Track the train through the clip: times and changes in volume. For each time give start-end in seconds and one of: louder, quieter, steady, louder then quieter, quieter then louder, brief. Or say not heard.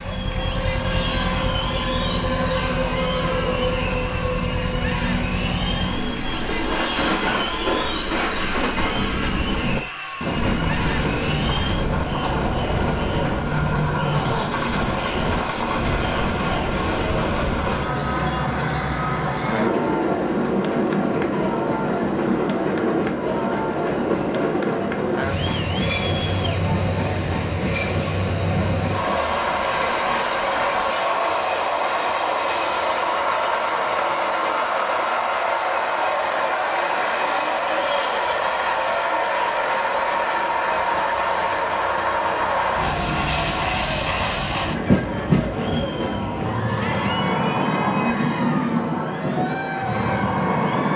0.0-50.9 steady.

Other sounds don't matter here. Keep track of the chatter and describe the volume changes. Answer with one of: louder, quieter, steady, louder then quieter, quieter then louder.
steady.